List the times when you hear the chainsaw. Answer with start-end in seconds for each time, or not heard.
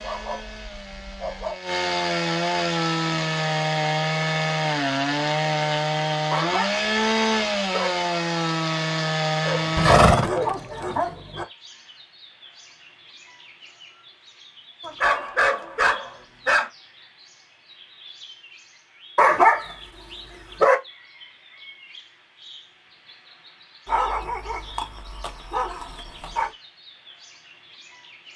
0.0-10.0.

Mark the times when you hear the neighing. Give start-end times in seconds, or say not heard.
9.8-11.0.